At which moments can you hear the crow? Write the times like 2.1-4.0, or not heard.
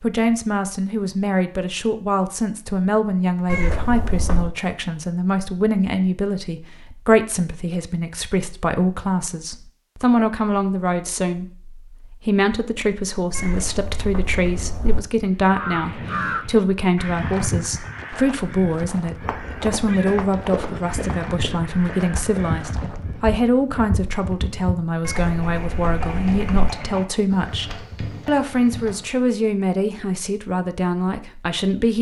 15.4-23.1.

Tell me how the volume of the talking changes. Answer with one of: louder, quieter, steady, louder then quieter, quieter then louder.
steady.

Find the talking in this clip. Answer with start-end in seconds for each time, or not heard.
0.0-31.9.